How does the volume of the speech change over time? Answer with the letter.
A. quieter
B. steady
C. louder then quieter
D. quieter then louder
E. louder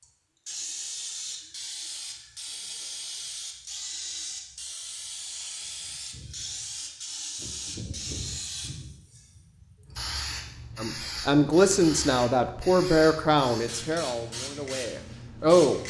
A.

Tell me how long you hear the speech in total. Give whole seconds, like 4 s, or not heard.
5 s.